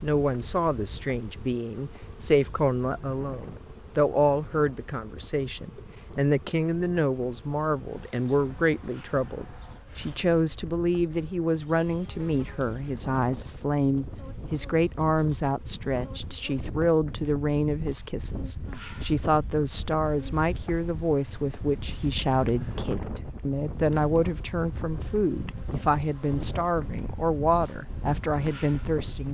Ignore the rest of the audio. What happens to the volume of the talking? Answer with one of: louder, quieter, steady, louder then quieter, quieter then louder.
steady.